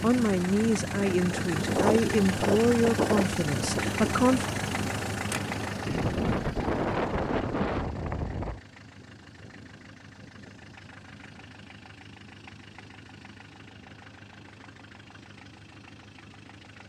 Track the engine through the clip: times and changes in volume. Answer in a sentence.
You can hear the engine from 0.0 to 16.8 s, getting quieter.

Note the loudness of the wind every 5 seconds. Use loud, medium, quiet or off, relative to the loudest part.
loud, loud, off, off.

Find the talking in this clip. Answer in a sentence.
You can hear the talking from 0.0 to 4.5 s.